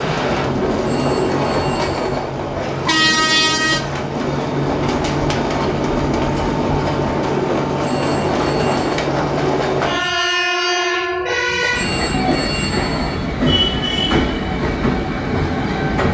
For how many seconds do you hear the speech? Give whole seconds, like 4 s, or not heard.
not heard.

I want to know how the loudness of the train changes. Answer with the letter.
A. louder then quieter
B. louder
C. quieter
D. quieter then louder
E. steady
E.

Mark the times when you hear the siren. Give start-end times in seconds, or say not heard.
not heard.